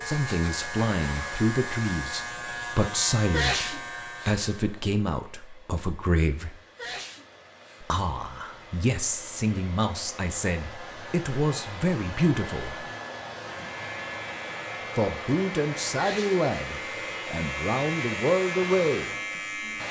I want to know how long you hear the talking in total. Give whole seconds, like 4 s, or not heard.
16 s.